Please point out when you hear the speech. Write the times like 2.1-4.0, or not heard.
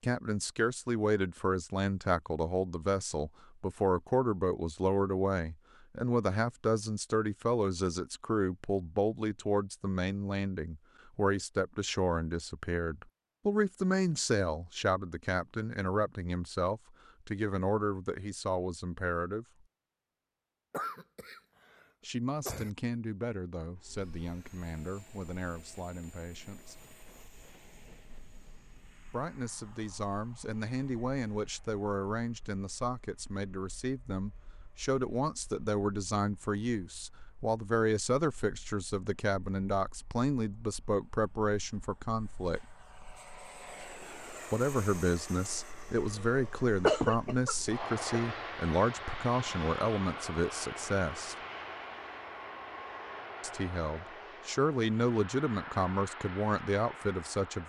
0.0-19.4, 22.1-26.8, 29.1-42.6, 44.5-51.4, 53.4-57.6.